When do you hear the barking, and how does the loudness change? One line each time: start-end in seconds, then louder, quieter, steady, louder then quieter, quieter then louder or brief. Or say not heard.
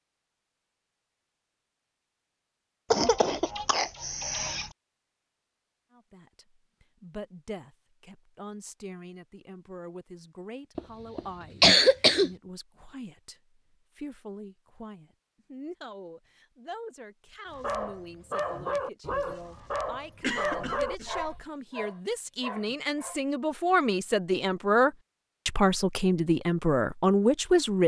17.5-23.2 quieter.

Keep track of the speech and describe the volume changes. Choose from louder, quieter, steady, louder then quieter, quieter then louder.
louder.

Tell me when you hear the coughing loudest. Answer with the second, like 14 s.
12 s.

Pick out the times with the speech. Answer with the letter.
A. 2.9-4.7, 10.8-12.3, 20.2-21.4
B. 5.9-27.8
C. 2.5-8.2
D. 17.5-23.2
B.